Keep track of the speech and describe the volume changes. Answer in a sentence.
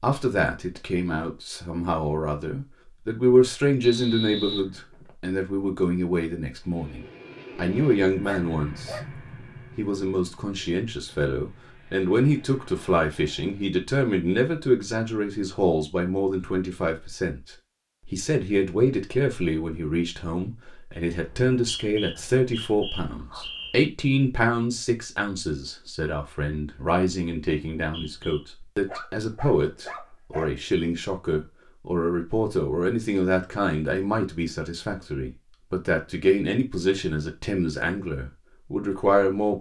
The volume of the speech stays about the same.